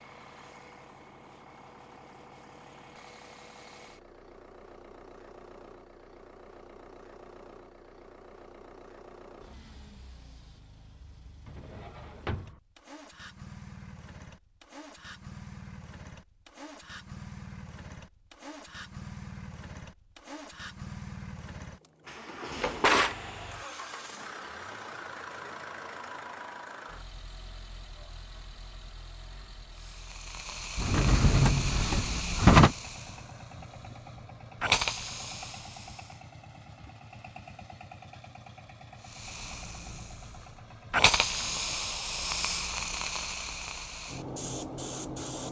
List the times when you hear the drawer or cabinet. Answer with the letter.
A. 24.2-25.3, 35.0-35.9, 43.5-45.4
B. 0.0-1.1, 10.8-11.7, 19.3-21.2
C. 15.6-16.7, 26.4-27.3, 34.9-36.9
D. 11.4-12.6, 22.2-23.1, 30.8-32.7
D.